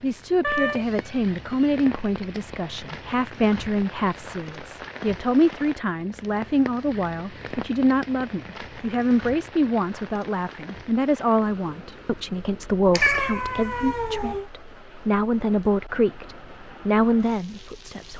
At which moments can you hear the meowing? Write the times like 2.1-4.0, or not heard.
0.4-1.9, 12.9-14.4.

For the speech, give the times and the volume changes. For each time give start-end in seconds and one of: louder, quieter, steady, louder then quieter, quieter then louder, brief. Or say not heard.
0.0-18.1 steady.